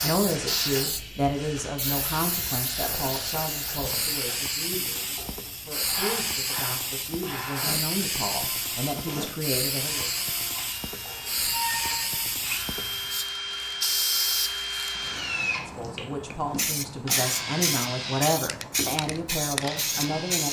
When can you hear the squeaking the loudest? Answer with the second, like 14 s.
12 s.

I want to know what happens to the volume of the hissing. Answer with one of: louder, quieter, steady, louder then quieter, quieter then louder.
steady.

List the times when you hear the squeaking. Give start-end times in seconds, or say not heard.
2.8-4.0, 11.1-12.3.